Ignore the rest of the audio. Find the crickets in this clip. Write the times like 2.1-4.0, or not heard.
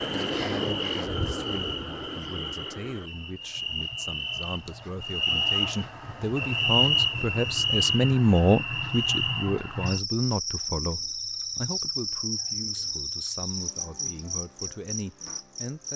0.0-15.9.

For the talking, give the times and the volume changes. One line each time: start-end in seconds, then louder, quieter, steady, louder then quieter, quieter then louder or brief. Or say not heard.
0.1-15.9 louder then quieter.